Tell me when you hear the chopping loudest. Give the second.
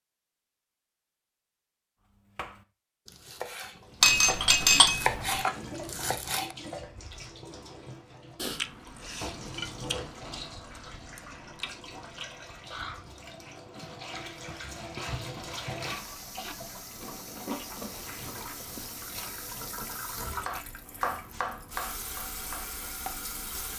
5 s.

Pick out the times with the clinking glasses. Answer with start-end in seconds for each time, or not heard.
4.0-5.4.